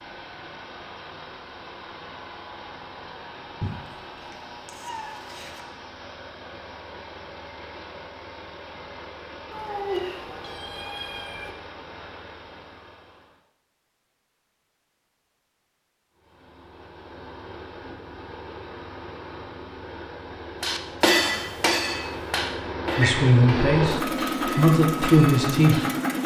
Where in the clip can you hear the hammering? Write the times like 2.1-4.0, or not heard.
20.6-25.9.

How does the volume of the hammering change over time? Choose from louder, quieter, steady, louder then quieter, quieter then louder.
quieter.